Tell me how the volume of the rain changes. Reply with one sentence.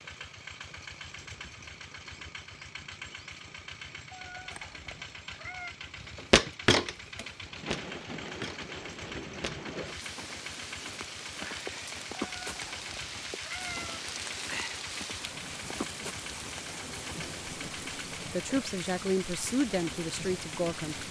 The volume of the rain goes up.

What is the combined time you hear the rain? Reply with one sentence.
You can hear the rain for 21 seconds altogether.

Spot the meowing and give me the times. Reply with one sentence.
The meowing can be heard from 4.1 to 5.8 s and from 12.2 to 14.0 s.